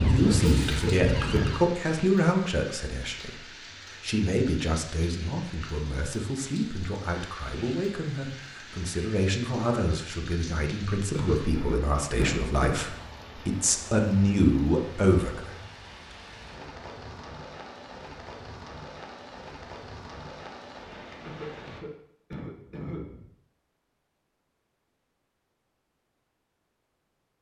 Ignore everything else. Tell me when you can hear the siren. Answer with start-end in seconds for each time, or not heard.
0.0-1.6.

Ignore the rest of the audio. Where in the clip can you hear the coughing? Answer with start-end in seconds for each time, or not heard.
0.2-1.6, 11.1-12.8, 21.2-23.2.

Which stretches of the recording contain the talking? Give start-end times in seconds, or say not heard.
0.0-15.6.